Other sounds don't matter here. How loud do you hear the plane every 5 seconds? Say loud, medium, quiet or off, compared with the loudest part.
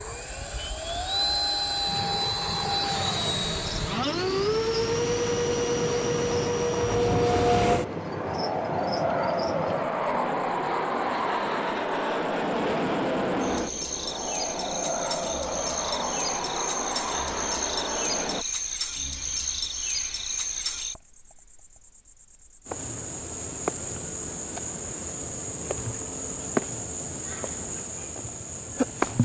loud, loud, loud, medium, off, off.